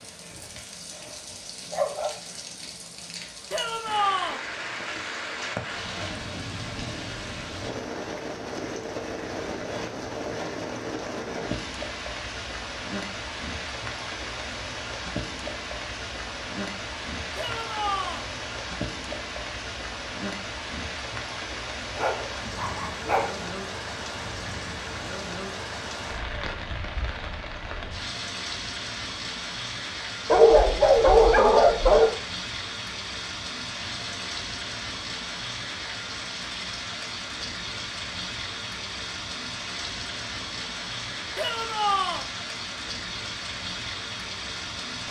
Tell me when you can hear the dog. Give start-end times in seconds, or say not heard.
0.3-2.1, 21.9-23.4, 30.2-32.1.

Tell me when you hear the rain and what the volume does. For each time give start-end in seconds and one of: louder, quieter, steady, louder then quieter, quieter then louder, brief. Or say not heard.
0.0-45.0 steady.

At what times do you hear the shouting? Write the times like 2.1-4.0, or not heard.
3.5-4.4, 17.4-18.2, 41.4-42.2.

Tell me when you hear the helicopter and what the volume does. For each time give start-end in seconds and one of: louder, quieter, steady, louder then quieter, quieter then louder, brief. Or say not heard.
not heard.